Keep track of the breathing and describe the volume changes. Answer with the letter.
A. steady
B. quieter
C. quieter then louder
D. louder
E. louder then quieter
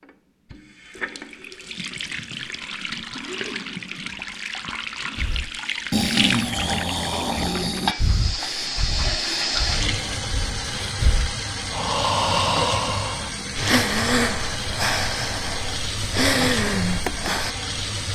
C.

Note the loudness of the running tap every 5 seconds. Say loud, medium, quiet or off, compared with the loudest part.
medium, loud, loud, loud.